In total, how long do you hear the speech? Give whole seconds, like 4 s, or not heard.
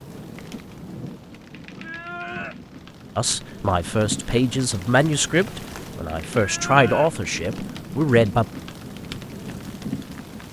5 s.